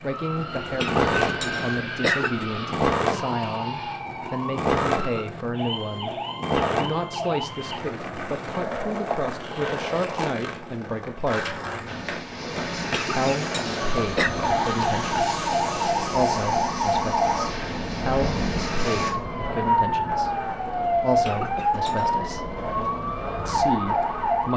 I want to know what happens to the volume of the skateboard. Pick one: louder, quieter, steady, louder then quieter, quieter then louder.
quieter.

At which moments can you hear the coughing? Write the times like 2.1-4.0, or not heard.
0.7-2.5, 12.8-14.3, 21.1-22.2.